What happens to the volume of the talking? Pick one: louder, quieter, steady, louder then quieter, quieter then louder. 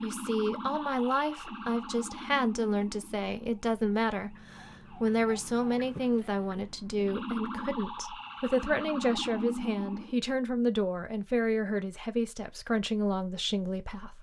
steady.